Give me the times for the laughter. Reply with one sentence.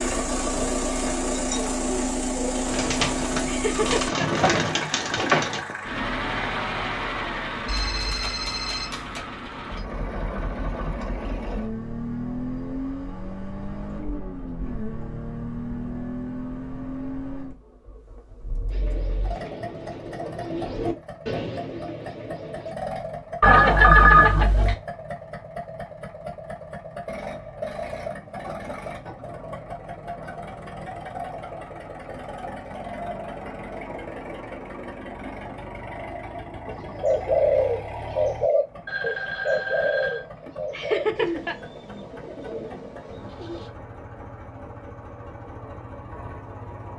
You can hear the laughter from 3.5 to 4.2 s and from 40.7 to 41.5 s.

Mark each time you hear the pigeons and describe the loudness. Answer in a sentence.
The pigeons can be heard from 0.0 to 5.6 s, getting louder; from 18.7 to 22.8 s, getting louder then quieter; and from 36.6 to 43.7 s, getting quieter.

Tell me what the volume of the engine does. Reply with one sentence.
The volume of the engine goes down.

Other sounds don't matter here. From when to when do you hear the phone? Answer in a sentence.
The phone can be heard from 7.7 to 9.2 s, from 23.4 to 24.8 s and from 38.9 to 40.2 s.